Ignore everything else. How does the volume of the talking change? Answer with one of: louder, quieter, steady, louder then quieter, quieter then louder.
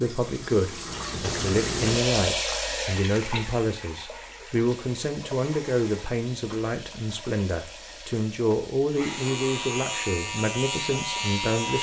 steady.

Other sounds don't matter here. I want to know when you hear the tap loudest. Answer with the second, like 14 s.
2 s.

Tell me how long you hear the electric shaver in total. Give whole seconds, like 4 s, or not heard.
3 s.